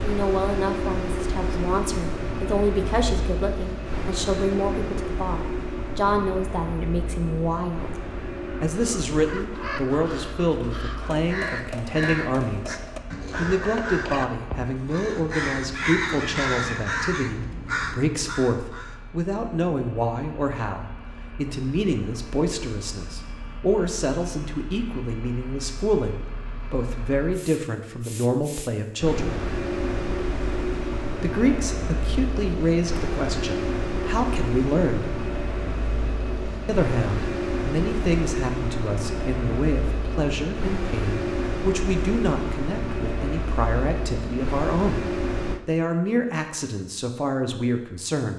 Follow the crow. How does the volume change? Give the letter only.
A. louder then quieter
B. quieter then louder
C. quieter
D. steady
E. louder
E.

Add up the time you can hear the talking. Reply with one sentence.
The talking can be heard for 44 seconds in total.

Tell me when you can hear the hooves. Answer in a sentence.
You can't hear the hooves here.